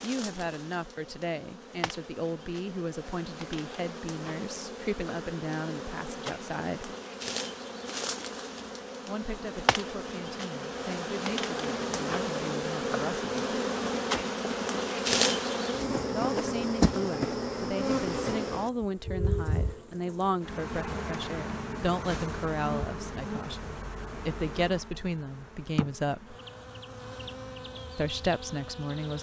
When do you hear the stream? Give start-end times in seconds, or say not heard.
not heard.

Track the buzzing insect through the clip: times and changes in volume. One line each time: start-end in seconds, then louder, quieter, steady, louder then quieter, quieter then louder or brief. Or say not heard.
0.0-29.1 louder then quieter.